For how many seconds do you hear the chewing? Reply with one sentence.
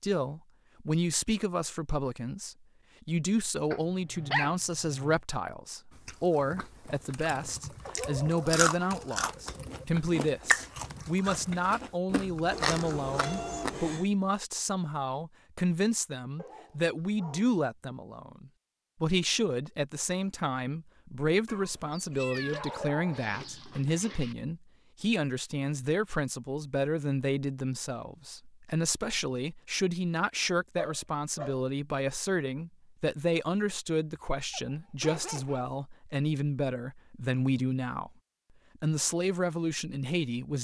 You can hear the chewing for 8 seconds altogether.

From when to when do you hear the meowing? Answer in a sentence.
You can hear the meowing from 12.5 to 14.1 s and from 21.4 to 22.8 s.